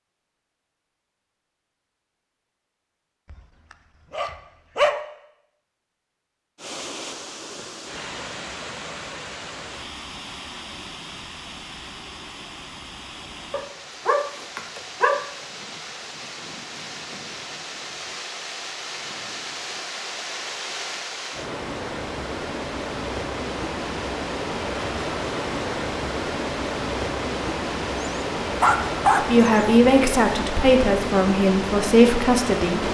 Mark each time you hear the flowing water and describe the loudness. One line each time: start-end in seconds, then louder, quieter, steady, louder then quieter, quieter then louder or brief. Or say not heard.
6.5-32.8 louder.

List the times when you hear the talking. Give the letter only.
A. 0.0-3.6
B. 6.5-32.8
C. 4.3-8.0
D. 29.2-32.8
D.